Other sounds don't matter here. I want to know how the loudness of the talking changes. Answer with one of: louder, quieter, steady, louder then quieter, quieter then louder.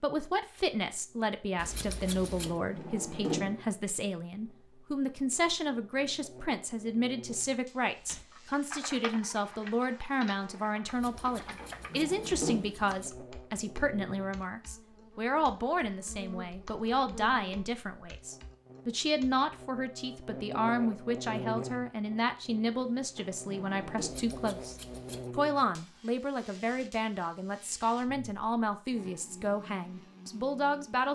steady.